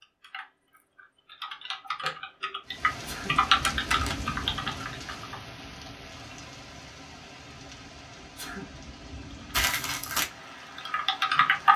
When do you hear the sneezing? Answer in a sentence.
The sneezing can be heard from 3.0 to 3.5 s and from 8.2 to 8.8 s.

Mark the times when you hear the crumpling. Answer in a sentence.
You can hear the crumpling from 3.6 to 4.2 s and from 9.5 to 10.3 s.